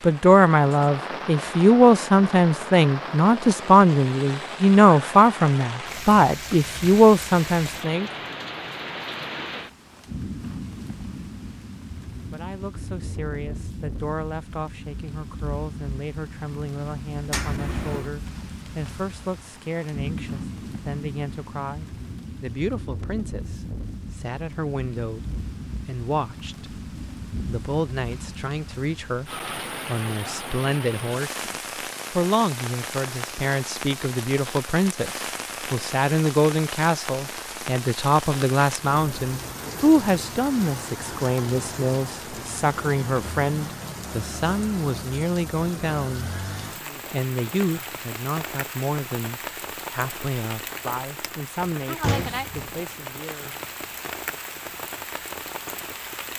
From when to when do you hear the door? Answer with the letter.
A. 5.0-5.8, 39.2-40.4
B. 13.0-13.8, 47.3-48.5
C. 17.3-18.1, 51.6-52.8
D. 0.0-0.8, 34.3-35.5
C.